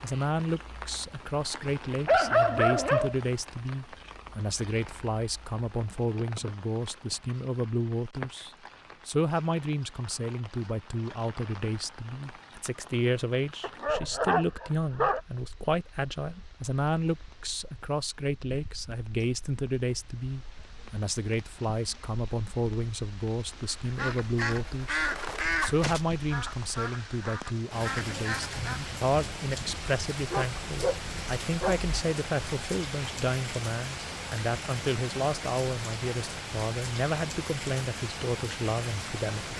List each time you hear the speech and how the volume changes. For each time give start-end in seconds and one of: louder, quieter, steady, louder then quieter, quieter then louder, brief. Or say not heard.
0.0-39.5 steady.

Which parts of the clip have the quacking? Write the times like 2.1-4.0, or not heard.
23.6-28.9.